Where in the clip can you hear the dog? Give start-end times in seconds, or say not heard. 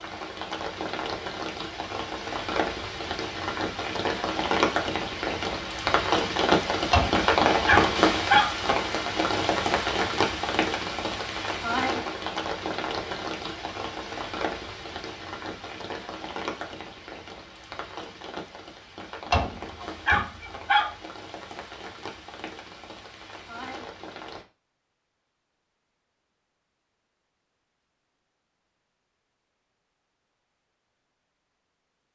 6.9-8.5, 19.3-20.9.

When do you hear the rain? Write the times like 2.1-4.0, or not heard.
0.0-24.4.